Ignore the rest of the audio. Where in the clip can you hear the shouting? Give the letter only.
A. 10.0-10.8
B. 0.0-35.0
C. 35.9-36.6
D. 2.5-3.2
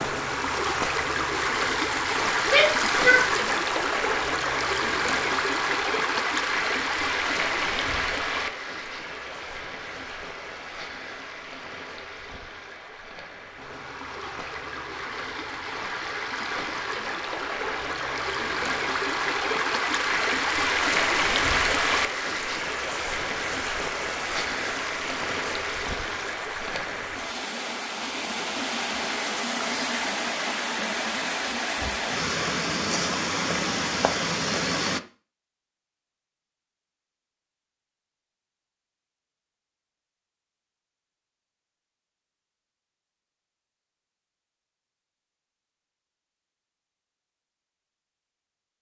D.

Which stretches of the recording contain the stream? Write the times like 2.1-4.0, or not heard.
0.0-35.0.